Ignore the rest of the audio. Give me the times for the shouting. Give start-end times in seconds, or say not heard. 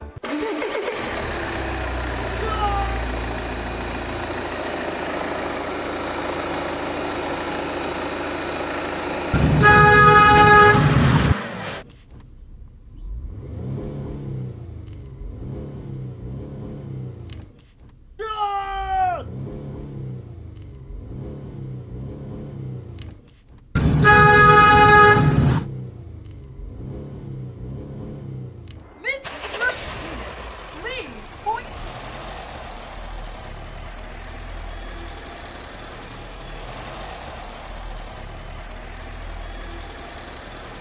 2.4-3.0, 18.1-19.2, 29.0-31.6.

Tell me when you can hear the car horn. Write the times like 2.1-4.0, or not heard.
9.3-11.3, 23.8-25.6.